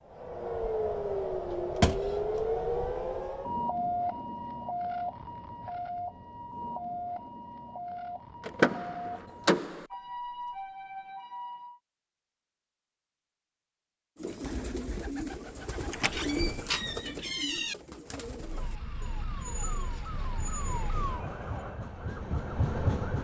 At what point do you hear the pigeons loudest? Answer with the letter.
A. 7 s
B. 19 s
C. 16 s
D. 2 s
C.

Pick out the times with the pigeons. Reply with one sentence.
The pigeons can be heard from 14.2 to 21.6 s.